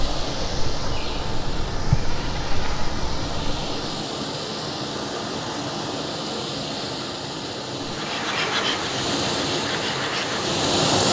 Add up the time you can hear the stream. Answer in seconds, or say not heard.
11 s.